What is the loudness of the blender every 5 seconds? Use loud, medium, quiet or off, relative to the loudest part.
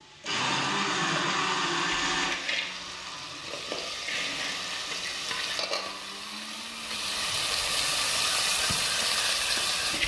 loud, quiet.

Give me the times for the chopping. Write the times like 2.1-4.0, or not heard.
not heard.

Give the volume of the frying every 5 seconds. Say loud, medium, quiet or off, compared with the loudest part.
medium, loud.